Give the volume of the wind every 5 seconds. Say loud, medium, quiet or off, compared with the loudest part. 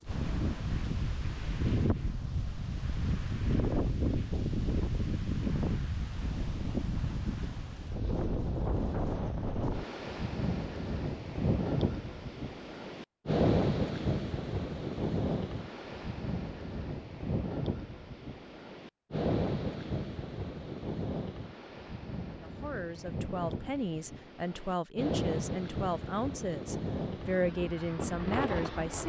loud, loud, loud, loud, medium, loud.